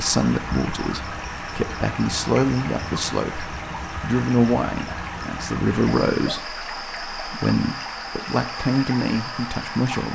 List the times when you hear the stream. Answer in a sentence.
You can hear the stream from 0.0 to 10.1 s.